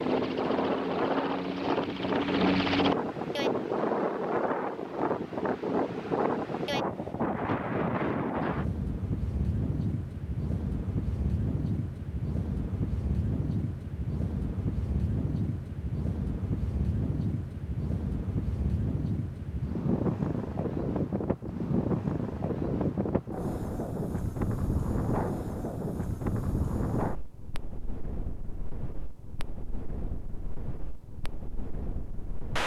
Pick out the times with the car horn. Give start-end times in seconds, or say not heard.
not heard.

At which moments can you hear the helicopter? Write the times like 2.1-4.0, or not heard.
0.0-3.0.